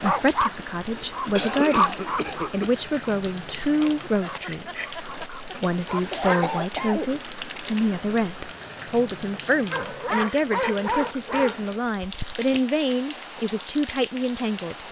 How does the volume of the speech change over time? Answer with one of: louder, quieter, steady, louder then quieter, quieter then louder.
steady.